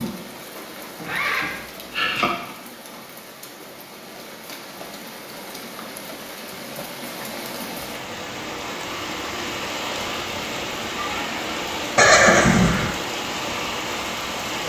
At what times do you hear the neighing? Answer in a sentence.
The neighing can be heard from 0.9 to 2.3 s and from 11.9 to 12.9 s.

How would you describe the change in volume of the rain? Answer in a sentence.
The volume of the rain goes up.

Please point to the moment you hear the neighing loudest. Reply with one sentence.
The volume of the neighing peaks at 12 seconds.